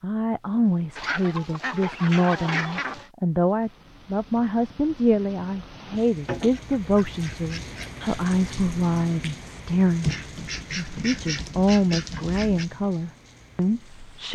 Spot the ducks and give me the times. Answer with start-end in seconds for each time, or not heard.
0.9-3.1, 6.2-8.0, 10.0-12.7.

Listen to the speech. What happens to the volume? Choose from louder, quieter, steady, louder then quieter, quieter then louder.
steady.